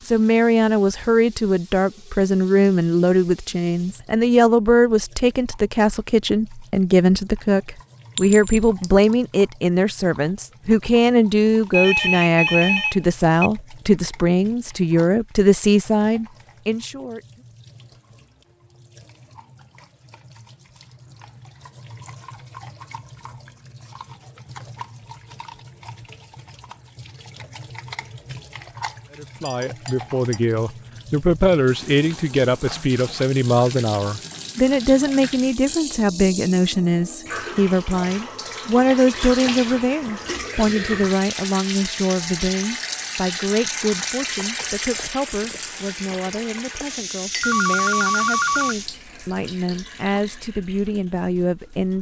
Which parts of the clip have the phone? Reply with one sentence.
The phone can be heard from 11.7 to 13.5 s and from 47.4 to 48.8 s.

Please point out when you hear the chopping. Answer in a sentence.
The chopping can't be heard in this clip.